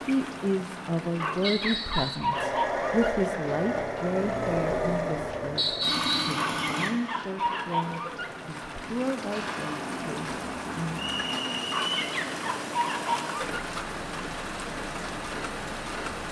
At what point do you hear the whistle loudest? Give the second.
6 s.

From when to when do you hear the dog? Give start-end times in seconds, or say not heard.
1.1-3.1, 6.3-8.3, 11.7-13.7.